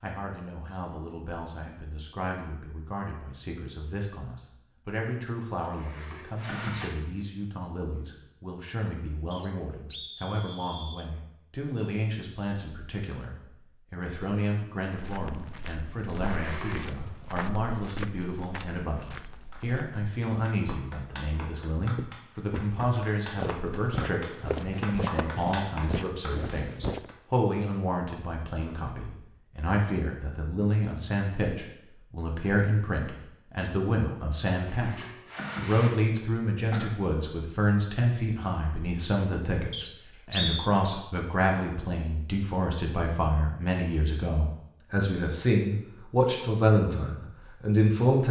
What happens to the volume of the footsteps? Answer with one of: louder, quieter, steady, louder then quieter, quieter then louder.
louder.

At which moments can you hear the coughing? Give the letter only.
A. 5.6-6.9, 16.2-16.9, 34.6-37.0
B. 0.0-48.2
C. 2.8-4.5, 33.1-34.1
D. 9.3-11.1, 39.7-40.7
A.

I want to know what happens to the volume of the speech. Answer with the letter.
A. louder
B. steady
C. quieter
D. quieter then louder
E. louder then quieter
A.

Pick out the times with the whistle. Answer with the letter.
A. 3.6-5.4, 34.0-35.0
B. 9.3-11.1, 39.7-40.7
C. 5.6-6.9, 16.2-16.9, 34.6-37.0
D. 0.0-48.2
B.